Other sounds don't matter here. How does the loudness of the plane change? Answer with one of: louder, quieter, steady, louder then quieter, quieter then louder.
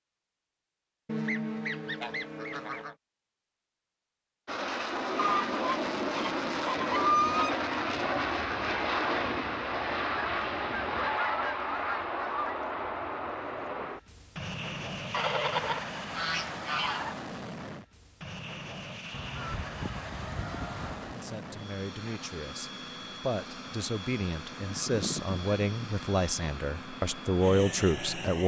quieter.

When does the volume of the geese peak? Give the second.
7 s.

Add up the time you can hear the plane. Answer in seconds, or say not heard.
24 s.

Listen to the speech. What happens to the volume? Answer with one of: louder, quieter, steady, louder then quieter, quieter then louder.
louder.